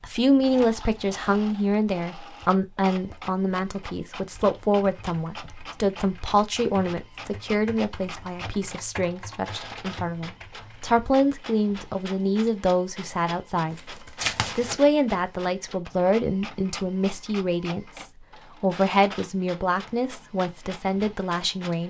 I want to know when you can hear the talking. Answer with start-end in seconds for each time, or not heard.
0.0-13.9, 14.6-21.8.